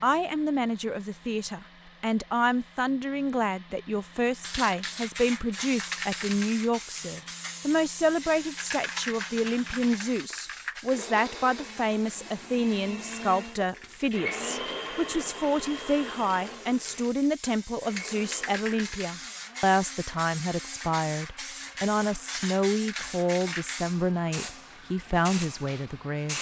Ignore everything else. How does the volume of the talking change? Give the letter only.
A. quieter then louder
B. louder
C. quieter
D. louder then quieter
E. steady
E.